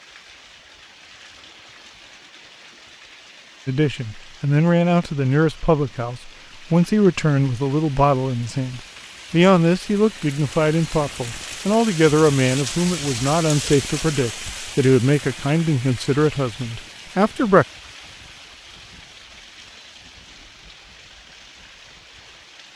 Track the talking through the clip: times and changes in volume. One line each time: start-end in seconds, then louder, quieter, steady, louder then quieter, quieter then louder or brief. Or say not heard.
3.6-17.6 steady.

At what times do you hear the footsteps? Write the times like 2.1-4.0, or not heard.
not heard.